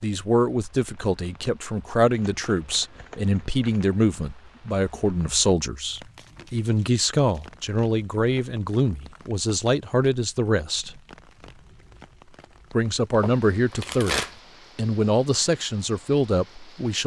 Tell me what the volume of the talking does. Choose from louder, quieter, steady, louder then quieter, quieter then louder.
steady.